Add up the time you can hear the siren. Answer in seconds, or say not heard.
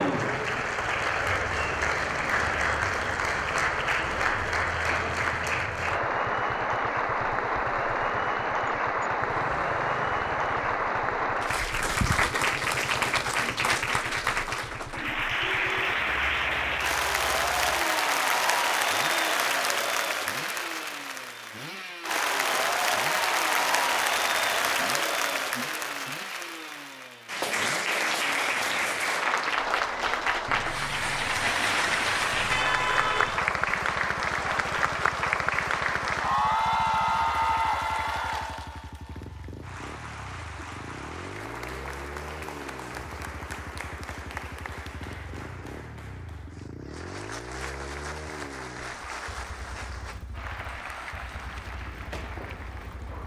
not heard.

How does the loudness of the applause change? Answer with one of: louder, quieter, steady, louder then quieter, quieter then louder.
quieter.